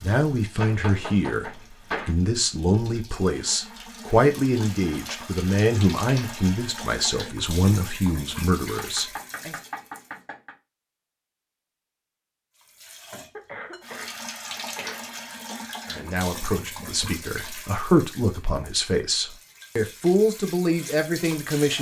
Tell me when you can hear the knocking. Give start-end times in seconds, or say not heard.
0.6-2.1, 8.8-10.6, 15.9-17.2.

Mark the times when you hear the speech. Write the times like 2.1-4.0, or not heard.
0.0-9.6, 15.9-21.7.